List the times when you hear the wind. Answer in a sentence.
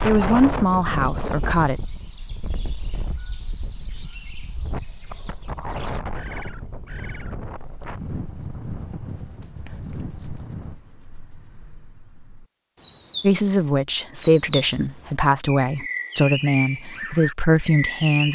You can hear the wind from 0.0 to 10.8 s.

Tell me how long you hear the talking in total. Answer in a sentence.
You can hear the talking for 7 seconds altogether.